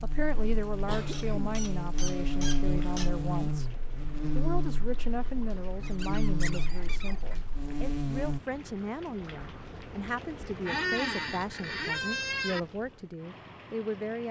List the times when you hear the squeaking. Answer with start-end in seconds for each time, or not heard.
1.1-3.1, 5.8-7.5, 10.7-12.6.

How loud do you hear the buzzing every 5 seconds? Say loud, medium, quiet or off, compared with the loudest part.
loud, loud, off.